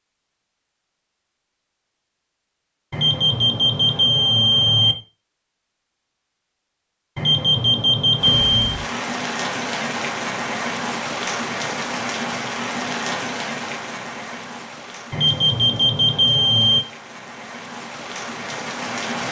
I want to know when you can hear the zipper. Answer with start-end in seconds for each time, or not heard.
not heard.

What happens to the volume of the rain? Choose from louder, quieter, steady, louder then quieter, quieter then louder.
quieter then louder.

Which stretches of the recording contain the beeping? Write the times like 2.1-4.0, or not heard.
2.9-5.0, 7.2-8.8, 15.1-16.9.